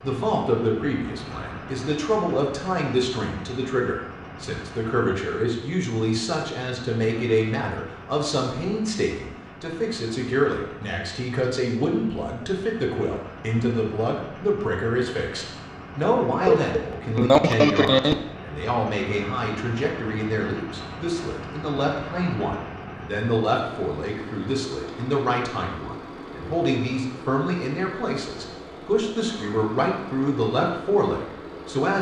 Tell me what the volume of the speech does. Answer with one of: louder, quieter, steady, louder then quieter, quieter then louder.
steady.